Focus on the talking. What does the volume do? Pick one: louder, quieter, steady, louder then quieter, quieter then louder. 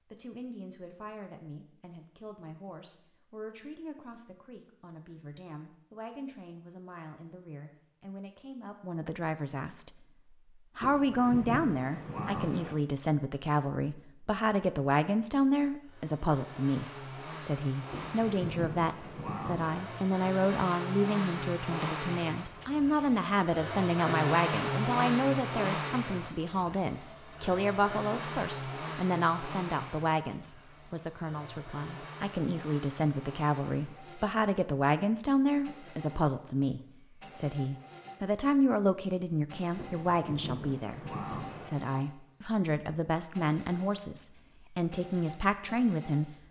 louder.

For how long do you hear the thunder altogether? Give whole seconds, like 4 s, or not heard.
6 s.